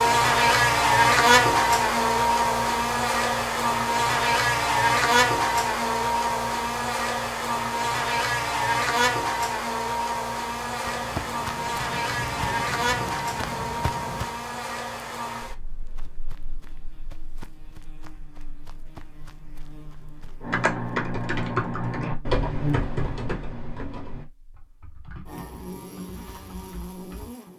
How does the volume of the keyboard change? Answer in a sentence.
The volume of the keyboard goes down.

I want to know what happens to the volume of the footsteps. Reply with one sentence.
The loudness of the footsteps goes down.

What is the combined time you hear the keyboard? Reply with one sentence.
The keyboard can be heard for 7 seconds in total.